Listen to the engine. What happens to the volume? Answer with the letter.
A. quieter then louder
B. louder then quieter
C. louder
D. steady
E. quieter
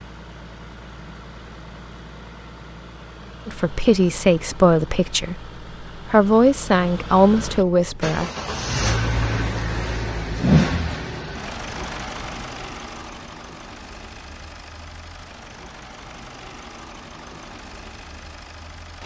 B.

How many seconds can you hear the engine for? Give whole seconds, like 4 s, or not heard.
19 s.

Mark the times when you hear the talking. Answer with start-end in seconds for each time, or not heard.
3.5-8.3.